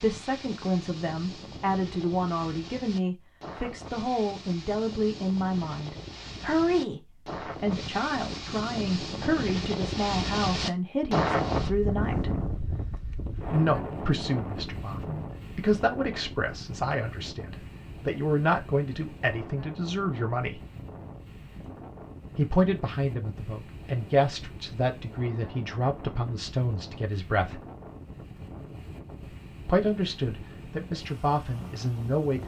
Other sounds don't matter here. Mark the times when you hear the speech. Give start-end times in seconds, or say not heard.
0.0-12.3, 13.5-20.6, 22.4-27.6, 29.6-32.4.